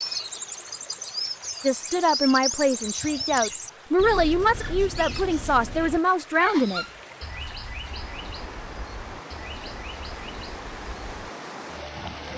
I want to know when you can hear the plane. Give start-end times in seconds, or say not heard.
not heard.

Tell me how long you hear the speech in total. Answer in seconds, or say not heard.
5 s.